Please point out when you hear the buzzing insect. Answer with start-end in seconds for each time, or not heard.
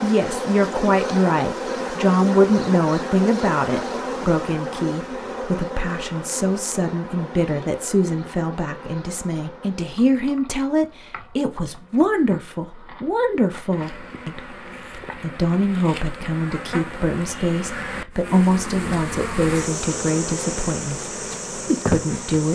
0.0-22.5.